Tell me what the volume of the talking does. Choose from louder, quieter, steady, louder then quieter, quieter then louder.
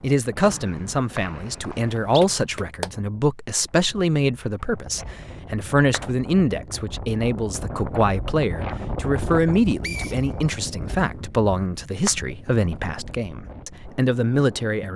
steady.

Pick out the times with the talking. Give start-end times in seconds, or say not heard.
0.0-14.9.